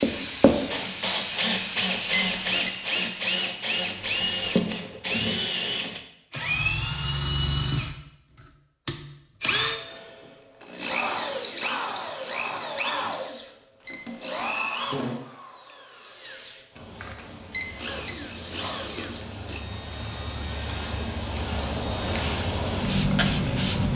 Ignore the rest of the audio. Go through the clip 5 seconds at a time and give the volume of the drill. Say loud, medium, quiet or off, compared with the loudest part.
loud, loud, medium, quiet, quiet.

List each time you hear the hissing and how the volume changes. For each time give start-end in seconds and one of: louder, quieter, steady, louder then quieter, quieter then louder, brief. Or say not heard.
0.0-4.6 quieter
16.7-23.9 louder.